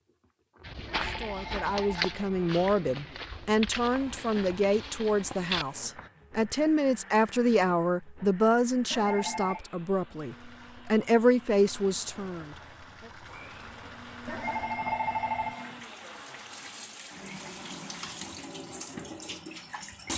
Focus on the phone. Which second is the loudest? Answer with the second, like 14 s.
15 s.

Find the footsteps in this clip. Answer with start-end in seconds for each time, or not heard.
0.7-6.1.